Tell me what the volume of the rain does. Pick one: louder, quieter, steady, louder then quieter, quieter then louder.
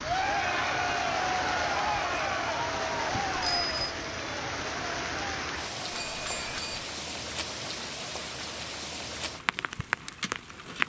steady.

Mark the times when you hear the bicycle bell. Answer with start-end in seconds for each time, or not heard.
3.1-3.8, 5.9-6.8.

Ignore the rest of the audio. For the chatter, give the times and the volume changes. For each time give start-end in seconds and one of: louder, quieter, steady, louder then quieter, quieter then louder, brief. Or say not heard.
0.0-6.6 quieter.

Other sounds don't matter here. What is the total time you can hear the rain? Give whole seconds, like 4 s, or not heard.
11 s.